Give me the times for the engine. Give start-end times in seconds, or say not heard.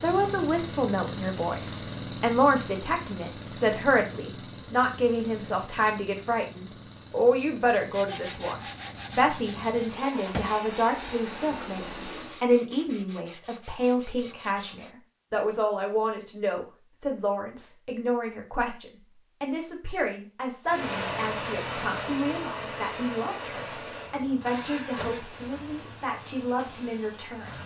0.0-12.4, 20.6-27.6.